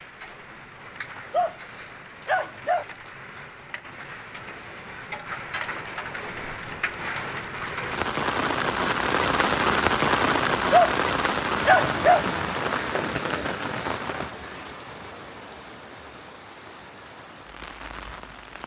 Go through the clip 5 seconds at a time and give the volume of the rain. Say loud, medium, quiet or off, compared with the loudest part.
quiet, loud, loud, quiet.